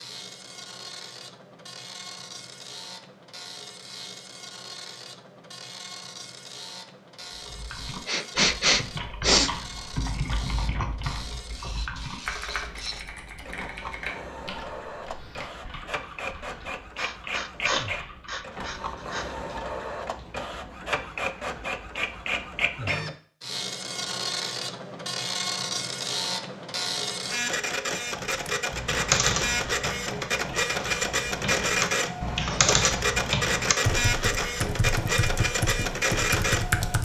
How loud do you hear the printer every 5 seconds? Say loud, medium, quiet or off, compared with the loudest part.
quiet, quiet, quiet, medium, medium, loud, loud, loud.